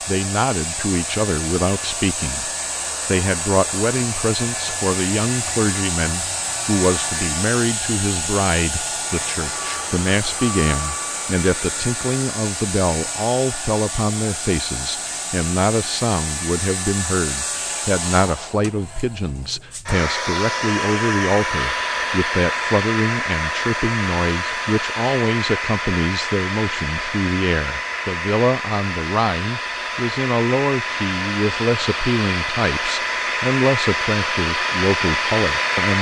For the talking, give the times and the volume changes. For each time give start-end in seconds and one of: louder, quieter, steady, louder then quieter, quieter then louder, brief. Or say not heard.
0.1-35.9 steady.